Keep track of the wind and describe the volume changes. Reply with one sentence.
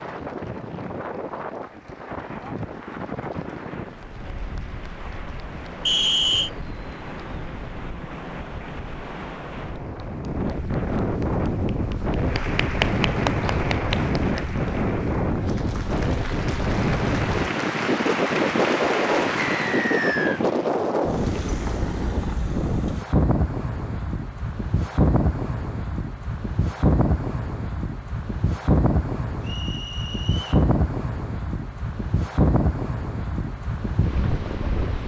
The volume of the wind goes up.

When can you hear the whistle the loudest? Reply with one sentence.
The loudest moment of the whistle is at 6 seconds.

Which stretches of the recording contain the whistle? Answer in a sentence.
The whistle can be heard from 5.8 to 6.5 s, from 19.4 to 20.4 s and from 29.4 to 30.6 s.